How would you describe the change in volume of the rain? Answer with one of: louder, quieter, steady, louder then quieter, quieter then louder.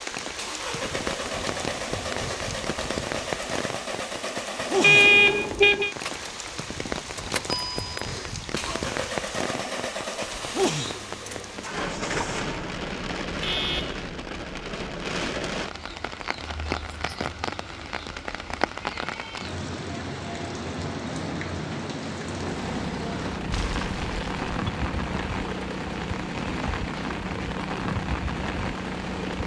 steady.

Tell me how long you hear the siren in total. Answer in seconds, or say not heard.
not heard.